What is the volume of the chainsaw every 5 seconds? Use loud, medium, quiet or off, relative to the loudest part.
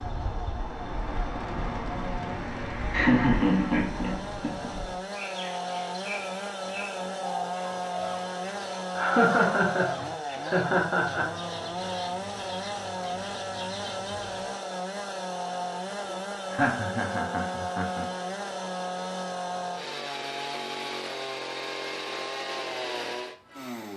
medium, loud, loud, loud, loud.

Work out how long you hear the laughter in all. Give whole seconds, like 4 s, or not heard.
6 s.